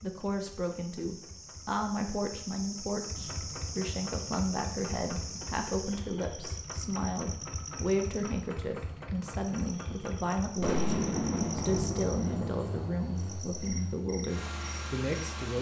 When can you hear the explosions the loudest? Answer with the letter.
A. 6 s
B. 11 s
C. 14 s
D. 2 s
B.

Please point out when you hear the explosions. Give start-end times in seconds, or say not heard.
10.6-13.6.